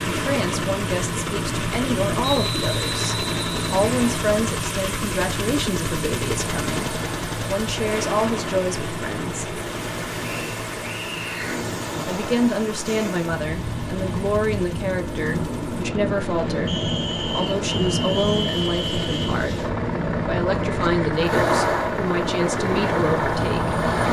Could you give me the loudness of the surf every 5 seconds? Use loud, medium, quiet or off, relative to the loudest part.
medium, medium, medium, loud, loud.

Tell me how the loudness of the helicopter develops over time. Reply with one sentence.
The volume of the helicopter goes down, then up.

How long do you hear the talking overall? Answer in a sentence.
You can hear the talking for 21 seconds altogether.